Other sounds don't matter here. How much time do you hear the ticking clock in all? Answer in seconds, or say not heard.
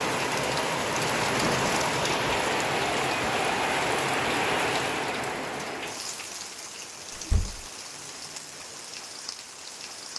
not heard.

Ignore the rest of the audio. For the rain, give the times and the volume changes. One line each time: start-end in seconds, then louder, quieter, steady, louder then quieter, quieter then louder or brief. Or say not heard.
0.0-10.1 quieter.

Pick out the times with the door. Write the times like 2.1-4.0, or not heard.
1.2-1.9, 7.1-7.7.